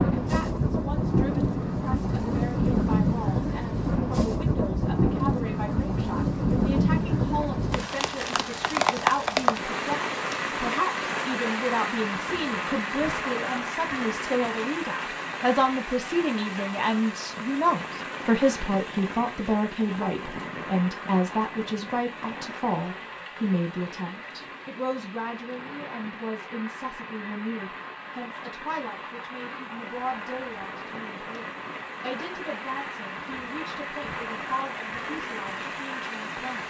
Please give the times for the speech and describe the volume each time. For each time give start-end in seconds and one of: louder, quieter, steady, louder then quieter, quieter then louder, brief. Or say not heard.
0.0-36.6 louder then quieter.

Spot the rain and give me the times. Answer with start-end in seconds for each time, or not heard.
0.0-36.6.